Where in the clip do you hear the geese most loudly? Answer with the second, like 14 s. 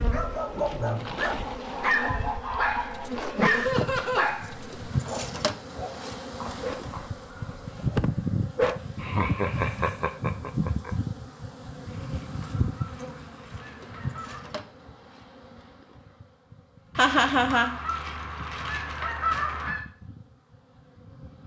19 s.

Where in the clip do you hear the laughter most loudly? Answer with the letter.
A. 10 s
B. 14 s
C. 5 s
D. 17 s
D.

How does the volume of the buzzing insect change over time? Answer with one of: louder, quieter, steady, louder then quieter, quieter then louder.
quieter.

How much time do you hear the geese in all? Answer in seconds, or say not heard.
9 s.